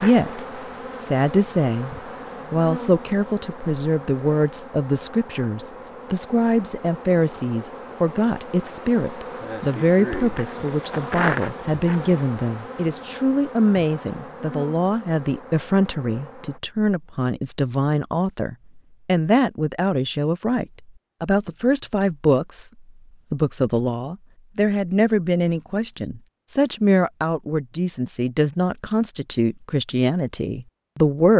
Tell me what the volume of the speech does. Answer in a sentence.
The volume of the speech stays about the same.